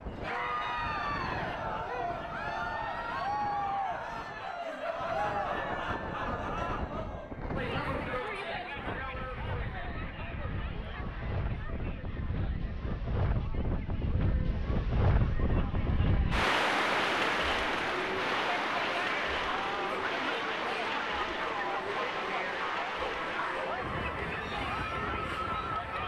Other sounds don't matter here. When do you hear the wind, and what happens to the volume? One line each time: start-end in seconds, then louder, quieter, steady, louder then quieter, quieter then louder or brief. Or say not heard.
0.0-26.0 louder then quieter.